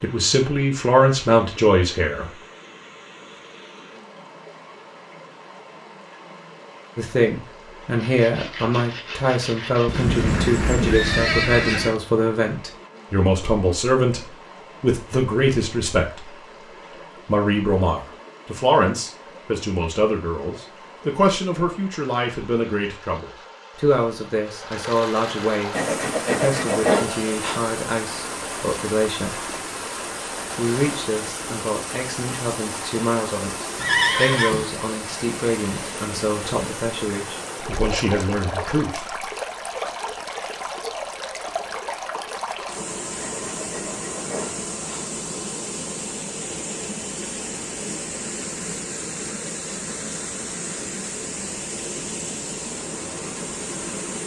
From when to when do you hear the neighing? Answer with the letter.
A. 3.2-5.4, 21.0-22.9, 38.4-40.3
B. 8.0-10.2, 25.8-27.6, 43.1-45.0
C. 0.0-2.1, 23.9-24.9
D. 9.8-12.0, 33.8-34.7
D.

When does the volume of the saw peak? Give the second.
27 s.